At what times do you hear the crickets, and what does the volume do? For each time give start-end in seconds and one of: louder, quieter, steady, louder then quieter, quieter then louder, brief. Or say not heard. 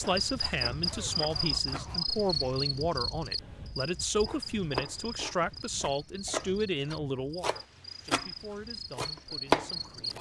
0.0-10.1 quieter then louder.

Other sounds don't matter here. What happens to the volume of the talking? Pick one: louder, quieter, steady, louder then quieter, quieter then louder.
quieter.